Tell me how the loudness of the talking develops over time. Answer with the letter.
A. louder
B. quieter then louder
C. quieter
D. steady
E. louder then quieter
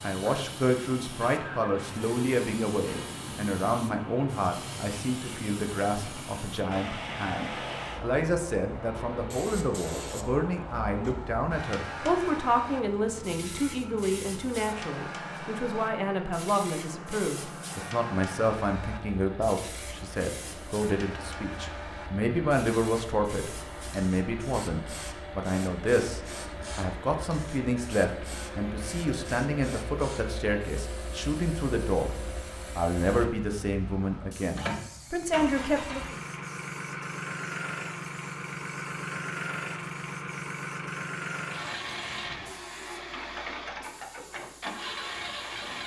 D.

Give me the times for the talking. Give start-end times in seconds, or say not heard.
0.0-32.1, 32.8-36.1.